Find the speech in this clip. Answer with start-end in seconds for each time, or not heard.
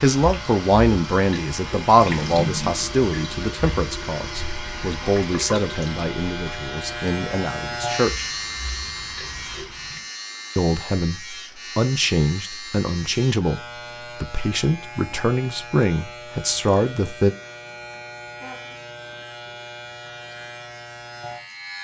0.0-8.2, 10.6-17.4.